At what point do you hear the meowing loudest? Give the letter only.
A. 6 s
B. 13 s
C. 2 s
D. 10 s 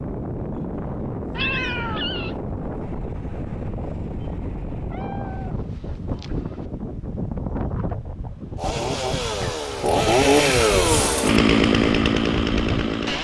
C.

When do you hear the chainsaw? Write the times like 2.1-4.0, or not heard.
8.6-13.1.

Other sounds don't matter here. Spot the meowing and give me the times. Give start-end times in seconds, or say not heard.
1.3-2.4, 4.9-6.7, 8.9-9.6.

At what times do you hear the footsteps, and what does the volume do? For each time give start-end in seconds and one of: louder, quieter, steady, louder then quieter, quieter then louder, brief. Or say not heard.
not heard.